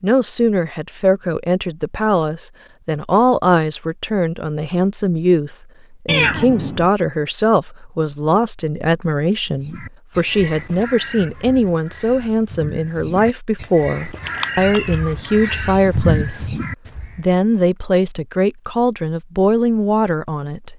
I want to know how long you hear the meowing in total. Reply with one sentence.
The meowing can be heard for 2 seconds in total.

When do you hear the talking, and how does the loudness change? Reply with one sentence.
The talking can be heard from 0.0 to 20.7 s, at a steady volume.